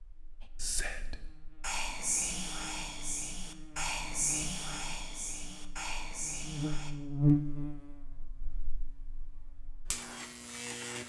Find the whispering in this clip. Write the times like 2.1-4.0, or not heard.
0.4-7.0.